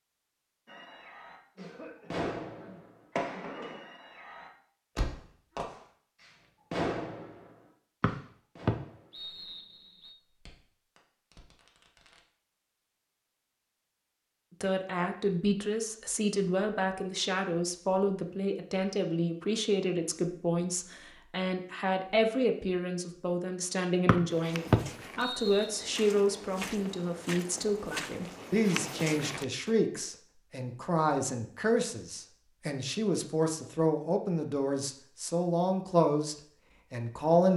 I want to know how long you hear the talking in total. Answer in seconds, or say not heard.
23 s.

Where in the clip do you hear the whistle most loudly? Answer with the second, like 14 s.
25 s.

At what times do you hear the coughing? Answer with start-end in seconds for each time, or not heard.
1.6-3.8.